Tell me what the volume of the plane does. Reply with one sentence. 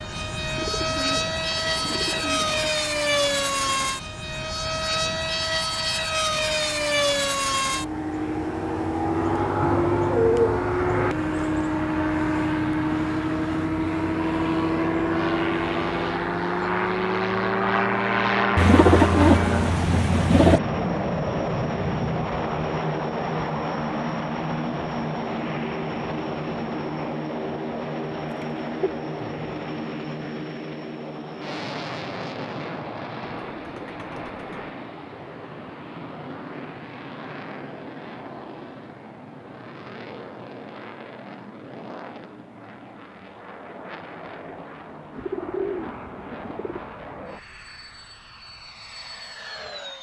The loudness of the plane goes down.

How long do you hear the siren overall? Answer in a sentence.
The siren can't be heard in this clip.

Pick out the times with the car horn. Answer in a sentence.
You can't hear the car horn here.